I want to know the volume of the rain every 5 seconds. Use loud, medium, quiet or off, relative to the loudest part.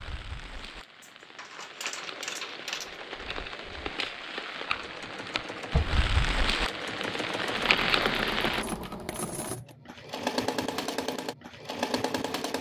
medium, loud, off.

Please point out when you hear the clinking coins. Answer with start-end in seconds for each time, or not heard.
0.6-3.0, 8.7-9.8.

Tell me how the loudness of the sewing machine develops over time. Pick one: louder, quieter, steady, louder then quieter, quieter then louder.
louder.